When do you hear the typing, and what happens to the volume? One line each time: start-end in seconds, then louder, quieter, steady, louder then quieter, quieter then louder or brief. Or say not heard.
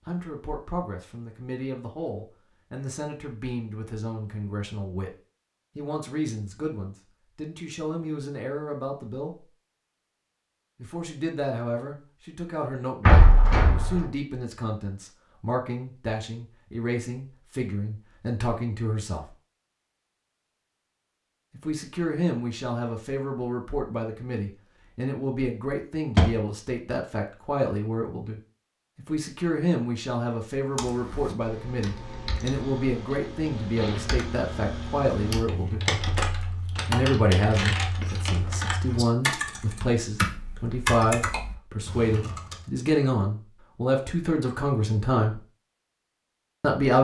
30.8-42.5 louder.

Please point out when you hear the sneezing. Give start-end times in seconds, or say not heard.
not heard.